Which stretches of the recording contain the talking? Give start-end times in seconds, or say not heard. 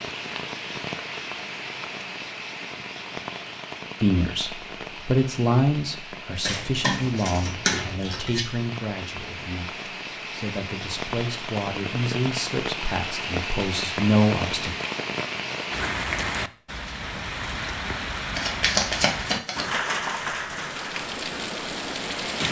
4.0-14.8.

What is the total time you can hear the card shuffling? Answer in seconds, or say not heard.
3 s.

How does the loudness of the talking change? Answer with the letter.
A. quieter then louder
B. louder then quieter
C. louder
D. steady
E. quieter
A.